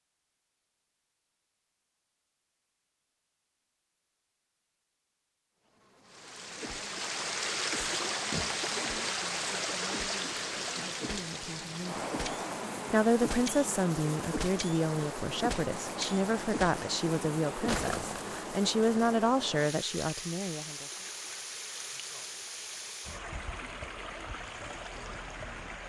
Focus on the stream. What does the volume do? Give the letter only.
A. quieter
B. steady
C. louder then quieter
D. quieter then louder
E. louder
A.